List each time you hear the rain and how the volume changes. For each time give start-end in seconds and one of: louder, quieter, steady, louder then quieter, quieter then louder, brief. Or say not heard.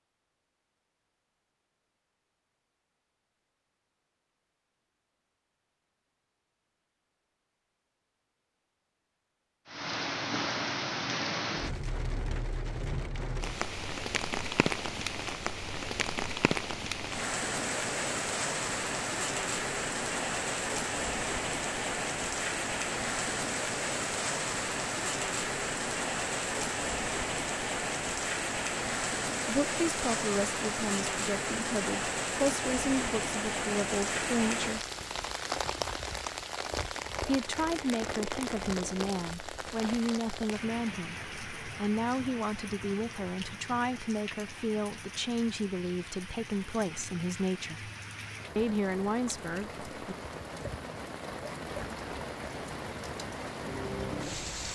9.7-54.7 quieter.